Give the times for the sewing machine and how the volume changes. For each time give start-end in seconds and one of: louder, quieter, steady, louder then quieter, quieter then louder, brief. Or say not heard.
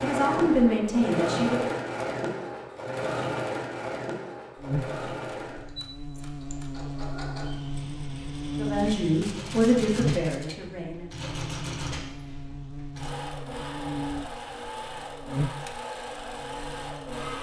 0.0-17.3 quieter.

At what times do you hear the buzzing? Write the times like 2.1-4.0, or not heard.
4.5-17.3.